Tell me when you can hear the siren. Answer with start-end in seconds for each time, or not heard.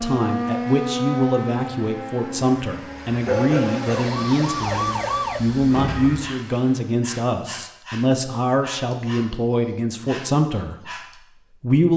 0.0-6.3.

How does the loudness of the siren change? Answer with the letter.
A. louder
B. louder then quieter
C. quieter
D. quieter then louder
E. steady
D.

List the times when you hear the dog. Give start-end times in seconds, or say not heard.
3.2-11.2.